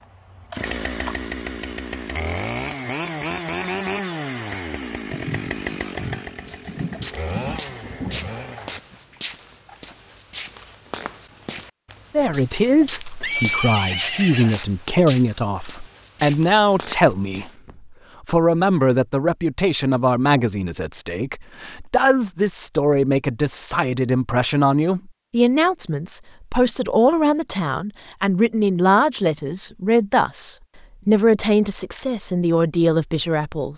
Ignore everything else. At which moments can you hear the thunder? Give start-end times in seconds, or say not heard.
5.0-9.2.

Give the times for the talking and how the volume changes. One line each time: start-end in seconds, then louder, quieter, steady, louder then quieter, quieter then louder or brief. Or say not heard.
12.1-33.7 steady.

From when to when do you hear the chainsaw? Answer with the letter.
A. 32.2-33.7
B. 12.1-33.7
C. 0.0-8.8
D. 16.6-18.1
C.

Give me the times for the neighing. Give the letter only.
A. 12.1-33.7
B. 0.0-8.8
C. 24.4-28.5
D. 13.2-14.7
D.